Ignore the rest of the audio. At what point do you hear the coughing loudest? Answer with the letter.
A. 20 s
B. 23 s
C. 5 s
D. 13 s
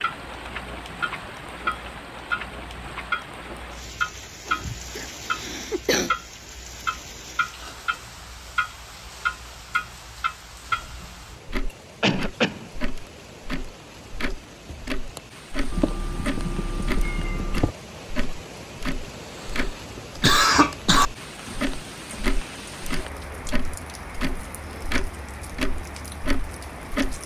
A.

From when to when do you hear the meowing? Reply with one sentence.
The meowing can be heard from 15.7 to 17.8 s.